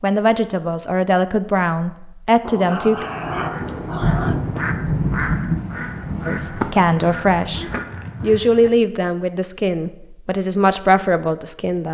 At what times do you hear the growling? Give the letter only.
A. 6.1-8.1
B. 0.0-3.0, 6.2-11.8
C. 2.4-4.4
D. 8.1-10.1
C.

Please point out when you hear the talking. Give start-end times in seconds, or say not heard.
0.0-3.0, 6.2-11.8.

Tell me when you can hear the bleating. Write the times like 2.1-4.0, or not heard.
not heard.